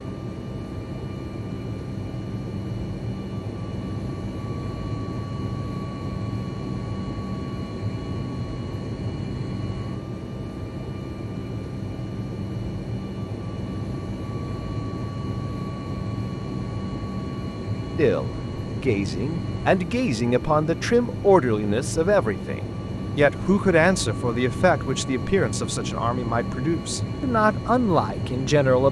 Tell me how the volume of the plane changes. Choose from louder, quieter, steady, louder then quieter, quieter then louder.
steady.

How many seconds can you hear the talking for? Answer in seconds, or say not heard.
11 s.